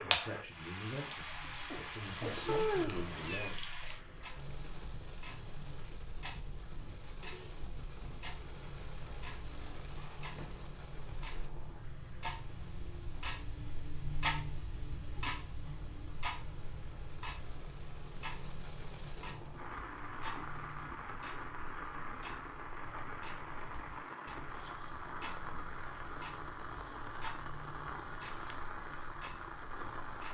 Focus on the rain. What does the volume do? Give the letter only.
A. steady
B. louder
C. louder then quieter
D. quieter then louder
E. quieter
D.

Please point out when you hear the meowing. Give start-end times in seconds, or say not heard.
2.5-3.5.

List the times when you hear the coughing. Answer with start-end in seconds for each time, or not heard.
1.4-2.5.